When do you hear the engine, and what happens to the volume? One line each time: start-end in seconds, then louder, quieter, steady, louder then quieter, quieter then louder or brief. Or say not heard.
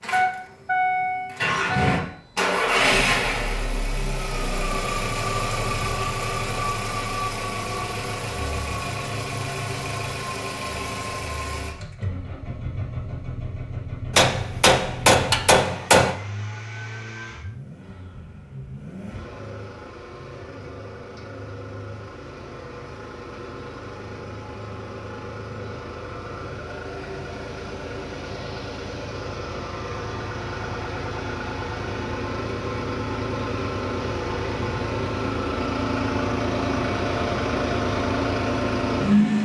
0.0-39.3 quieter then louder.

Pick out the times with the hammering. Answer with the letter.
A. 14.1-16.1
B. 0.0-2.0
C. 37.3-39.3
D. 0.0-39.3
A.